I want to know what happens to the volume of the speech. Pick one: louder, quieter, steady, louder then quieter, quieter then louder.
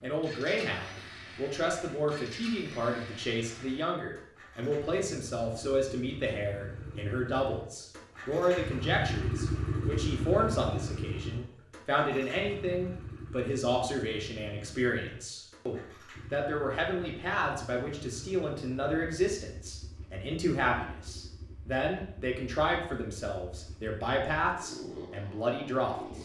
steady.